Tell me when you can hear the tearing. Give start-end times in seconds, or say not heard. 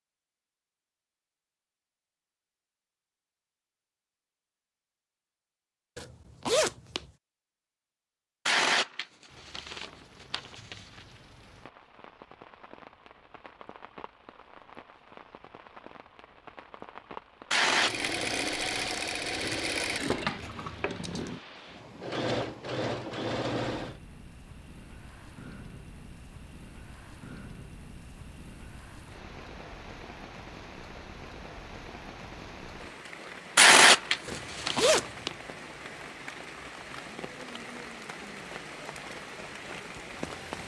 8.4-11.0, 17.5-18.9, 33.5-35.0.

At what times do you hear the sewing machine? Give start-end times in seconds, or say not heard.
17.6-24.0.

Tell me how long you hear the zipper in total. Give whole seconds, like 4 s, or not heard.
2 s.